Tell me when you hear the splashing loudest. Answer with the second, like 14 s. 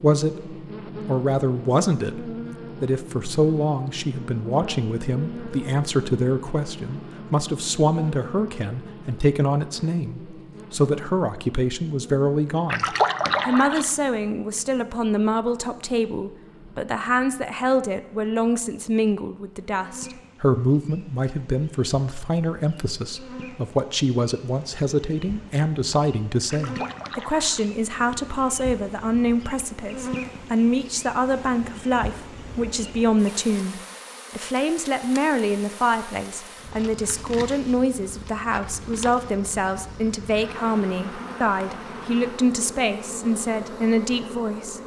13 s.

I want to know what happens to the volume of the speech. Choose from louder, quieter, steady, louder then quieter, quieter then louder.
steady.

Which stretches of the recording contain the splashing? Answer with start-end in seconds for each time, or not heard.
12.7-13.9, 26.5-27.7.